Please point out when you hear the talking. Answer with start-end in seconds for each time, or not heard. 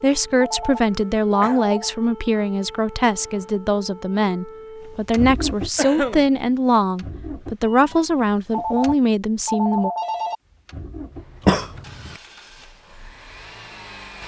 0.0-9.9.